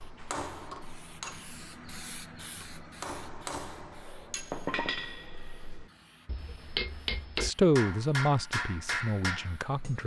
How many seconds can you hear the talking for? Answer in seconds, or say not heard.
3 s.